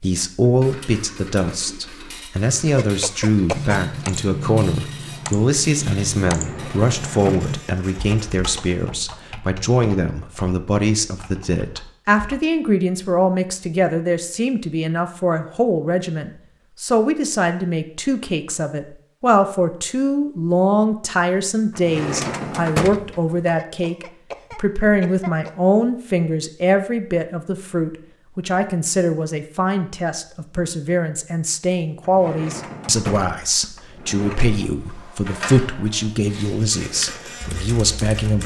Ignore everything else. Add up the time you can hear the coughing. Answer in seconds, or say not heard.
3 s.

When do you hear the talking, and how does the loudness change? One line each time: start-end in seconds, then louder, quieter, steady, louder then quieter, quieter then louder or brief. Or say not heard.
0.0-38.4 steady.